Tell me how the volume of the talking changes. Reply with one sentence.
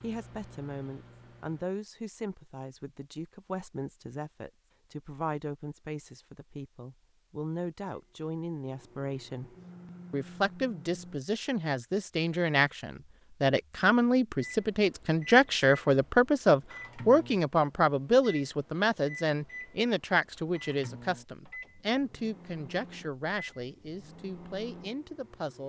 The loudness of the talking goes up, then down.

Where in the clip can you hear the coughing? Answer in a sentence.
The coughing can't be heard in this clip.